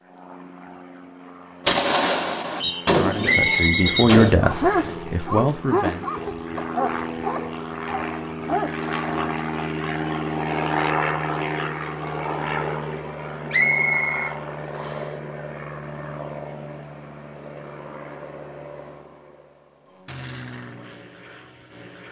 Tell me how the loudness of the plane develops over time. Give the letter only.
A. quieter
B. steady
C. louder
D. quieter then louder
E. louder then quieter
E.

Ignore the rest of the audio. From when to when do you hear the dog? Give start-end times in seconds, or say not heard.
3.8-9.3.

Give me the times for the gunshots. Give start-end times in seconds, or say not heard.
1.6-4.3.